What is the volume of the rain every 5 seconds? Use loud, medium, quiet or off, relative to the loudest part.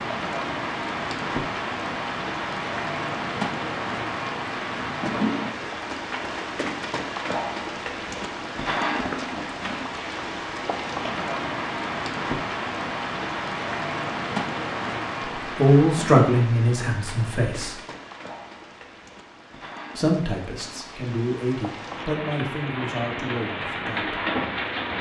loud, loud, loud, medium, loud.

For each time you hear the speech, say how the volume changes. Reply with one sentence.
You can hear the speech briefly from 15.6 to 17.8 s; and from 19.9 to 24.2 s, getting louder then quieter.